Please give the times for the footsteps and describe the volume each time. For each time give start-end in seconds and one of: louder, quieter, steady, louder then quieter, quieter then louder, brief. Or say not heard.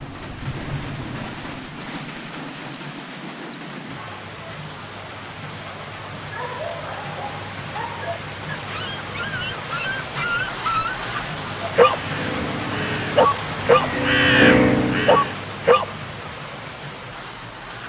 not heard.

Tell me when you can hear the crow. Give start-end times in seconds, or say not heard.
11.9-15.4.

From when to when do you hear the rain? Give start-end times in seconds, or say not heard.
0.0-17.8.